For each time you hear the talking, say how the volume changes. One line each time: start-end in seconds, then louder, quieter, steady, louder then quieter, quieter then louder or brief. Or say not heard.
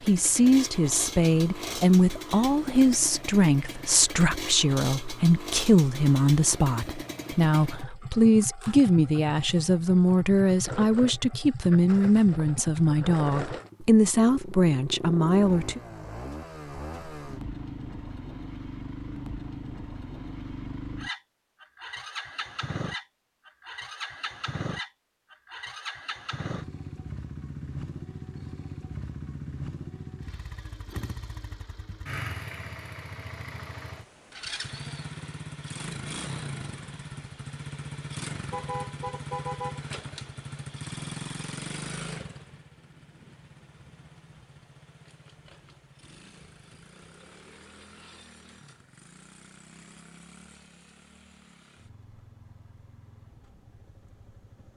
0.0-15.8 steady.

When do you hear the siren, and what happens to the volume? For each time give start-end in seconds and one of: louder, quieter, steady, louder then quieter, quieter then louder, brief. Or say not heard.
not heard.